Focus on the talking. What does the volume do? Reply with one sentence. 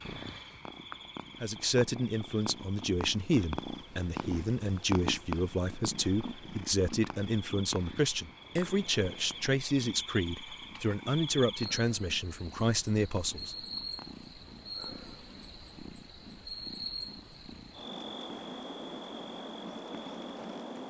The loudness of the talking stays about the same.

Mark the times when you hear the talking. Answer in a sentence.
You can hear the talking from 1.4 to 13.6 s.